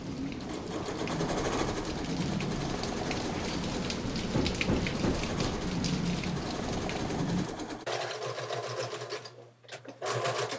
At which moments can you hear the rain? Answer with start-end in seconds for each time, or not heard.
0.0-7.5.